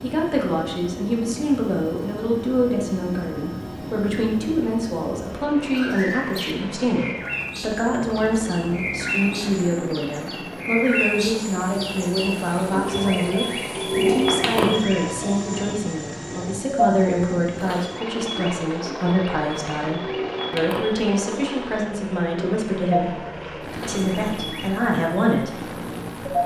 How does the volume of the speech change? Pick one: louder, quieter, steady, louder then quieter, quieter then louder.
steady.